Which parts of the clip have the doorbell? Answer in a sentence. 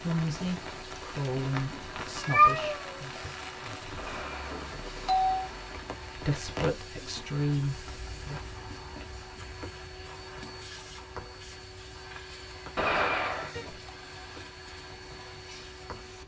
You can hear the doorbell from 4.0 to 5.4 s and from 12.8 to 13.9 s.